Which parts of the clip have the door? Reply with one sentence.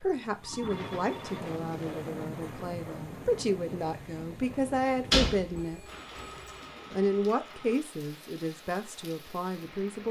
The door can be heard from 4.9 to 6.2 s.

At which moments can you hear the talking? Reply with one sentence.
The talking can be heard from 0.0 to 5.8 s and from 6.9 to 10.0 s.